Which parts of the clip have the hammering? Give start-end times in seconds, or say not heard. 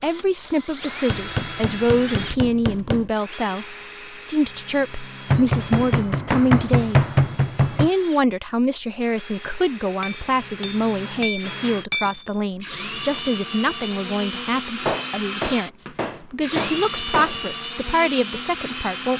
1.1-3.1, 5.3-7.9, 10.0-12.2, 14.8-17.4.